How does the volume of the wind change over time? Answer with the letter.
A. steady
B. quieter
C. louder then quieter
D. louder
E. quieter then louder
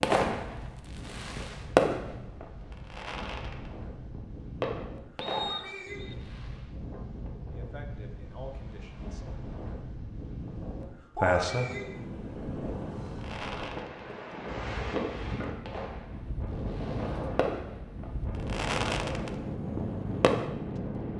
D.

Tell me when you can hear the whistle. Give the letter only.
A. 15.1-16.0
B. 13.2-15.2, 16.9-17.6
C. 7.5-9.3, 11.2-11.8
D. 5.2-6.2
D.